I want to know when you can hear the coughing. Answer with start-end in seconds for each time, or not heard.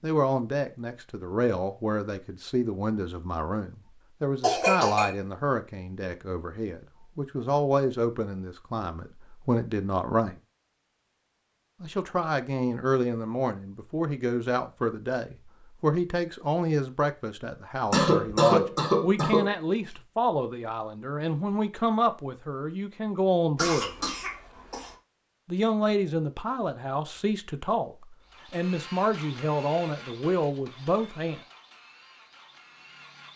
4.4-5.2, 17.9-19.5, 23.6-24.9.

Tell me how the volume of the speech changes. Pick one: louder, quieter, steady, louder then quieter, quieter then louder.
steady.